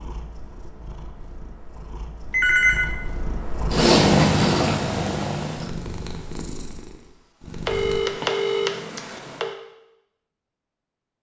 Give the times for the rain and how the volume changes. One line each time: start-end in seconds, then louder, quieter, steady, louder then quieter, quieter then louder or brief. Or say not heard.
not heard.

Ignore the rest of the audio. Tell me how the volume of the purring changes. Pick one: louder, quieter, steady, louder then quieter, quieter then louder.
louder then quieter.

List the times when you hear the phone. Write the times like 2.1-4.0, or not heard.
2.3-3.0, 7.7-9.6.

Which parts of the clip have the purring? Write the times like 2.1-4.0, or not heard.
0.0-8.0.